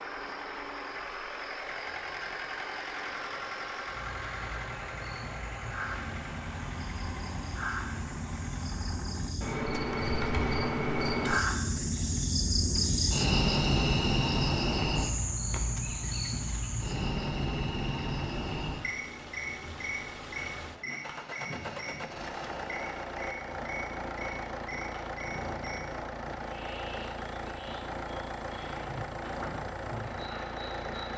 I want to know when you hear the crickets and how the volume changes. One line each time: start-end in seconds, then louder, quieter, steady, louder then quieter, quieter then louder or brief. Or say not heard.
0.0-31.1 louder then quieter.